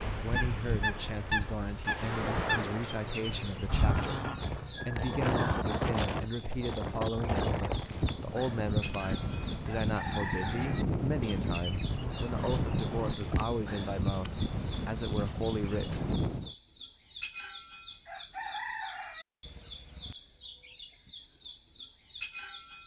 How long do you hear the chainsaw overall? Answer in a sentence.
You can't hear the chainsaw here.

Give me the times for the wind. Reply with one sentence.
The wind can be heard from 0.0 to 16.6 s.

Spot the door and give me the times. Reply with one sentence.
You can't hear the door here.